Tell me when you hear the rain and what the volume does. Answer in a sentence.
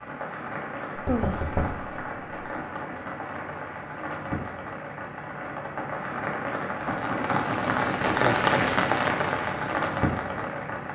The rain can be heard from 0.0 to 10.9 s, getting louder.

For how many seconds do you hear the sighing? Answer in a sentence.
The sighing can be heard for 2 seconds in total.